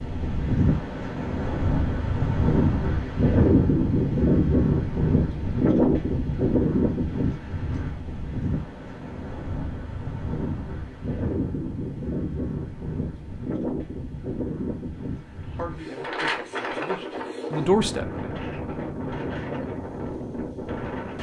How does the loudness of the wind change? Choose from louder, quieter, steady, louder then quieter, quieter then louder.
quieter.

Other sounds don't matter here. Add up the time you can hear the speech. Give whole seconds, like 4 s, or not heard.
3 s.